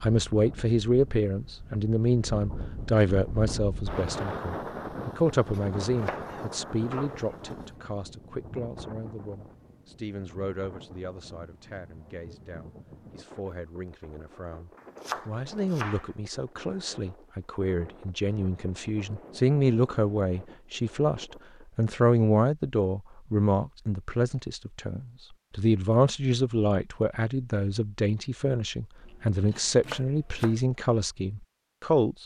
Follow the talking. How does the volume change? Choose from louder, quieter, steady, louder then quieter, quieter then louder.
quieter then louder.